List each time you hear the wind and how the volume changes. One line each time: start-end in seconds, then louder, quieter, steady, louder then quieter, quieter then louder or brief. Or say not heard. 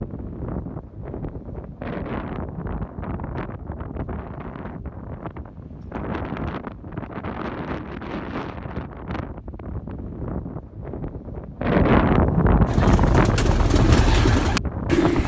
0.0-15.2 louder.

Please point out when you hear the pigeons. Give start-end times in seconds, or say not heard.
12.7-15.2.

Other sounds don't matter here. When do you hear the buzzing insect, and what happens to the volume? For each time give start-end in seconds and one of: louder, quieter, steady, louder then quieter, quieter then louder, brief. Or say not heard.
not heard.